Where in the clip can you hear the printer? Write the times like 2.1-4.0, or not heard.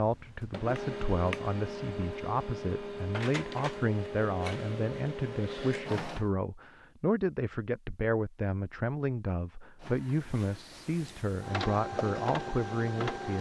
0.0-6.3, 9.8-13.3.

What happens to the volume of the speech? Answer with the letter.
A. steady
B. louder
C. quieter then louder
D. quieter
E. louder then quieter
A.